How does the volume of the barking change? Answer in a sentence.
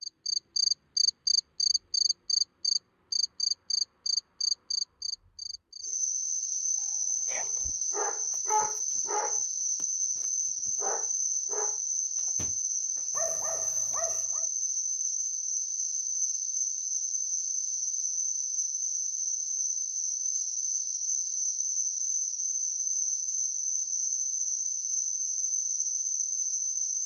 The volume of the barking goes down.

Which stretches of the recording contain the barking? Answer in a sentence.
You can hear the barking from 7.2 to 14.4 s.